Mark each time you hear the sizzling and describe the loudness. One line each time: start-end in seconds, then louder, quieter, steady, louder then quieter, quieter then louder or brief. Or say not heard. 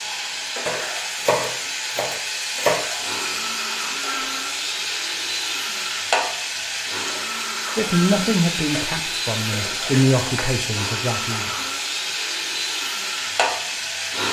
0.0-14.2 steady.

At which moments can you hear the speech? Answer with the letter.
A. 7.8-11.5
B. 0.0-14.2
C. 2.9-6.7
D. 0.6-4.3
A.